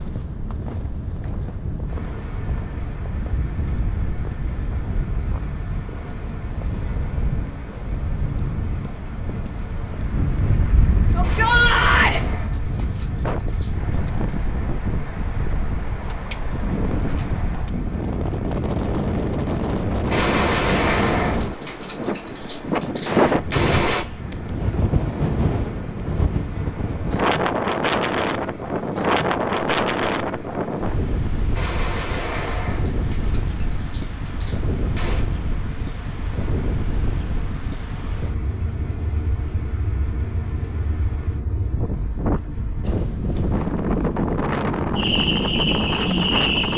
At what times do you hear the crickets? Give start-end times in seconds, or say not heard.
0.0-46.7.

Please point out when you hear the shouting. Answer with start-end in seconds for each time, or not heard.
11.2-12.2.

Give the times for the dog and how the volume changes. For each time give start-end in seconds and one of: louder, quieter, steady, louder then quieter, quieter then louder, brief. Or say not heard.
not heard.